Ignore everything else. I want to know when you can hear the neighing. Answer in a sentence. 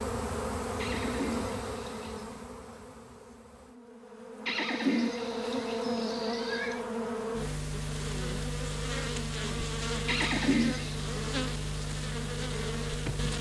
The neighing can be heard from 0.8 to 2.3 s, from 4.5 to 6.8 s and from 10.1 to 11.1 s.